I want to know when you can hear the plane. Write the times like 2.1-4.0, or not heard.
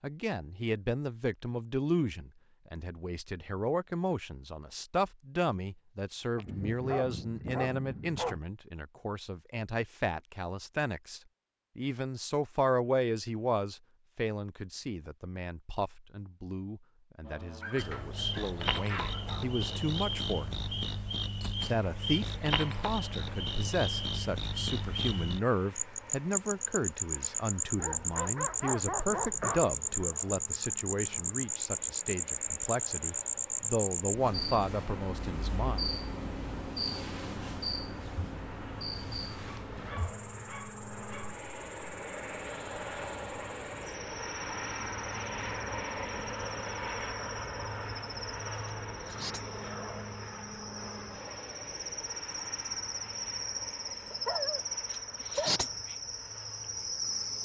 17.2-57.4.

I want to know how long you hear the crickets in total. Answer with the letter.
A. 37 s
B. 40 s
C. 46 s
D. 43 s
B.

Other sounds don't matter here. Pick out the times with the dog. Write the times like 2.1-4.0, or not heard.
6.3-8.4, 17.6-19.4, 27.8-29.7, 39.5-41.5, 54.1-55.8.